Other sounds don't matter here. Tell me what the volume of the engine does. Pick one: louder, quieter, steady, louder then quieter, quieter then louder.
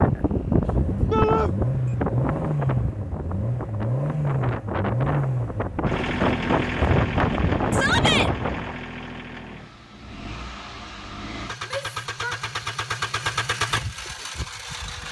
quieter then louder.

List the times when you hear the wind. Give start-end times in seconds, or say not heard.
0.0-8.8.